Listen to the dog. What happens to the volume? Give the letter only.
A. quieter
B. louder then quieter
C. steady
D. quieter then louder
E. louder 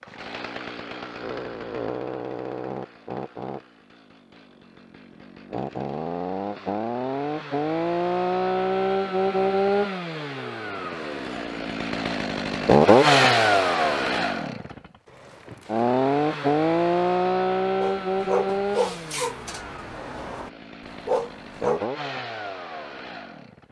D.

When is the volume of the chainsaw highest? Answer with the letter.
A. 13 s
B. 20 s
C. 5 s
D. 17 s
A.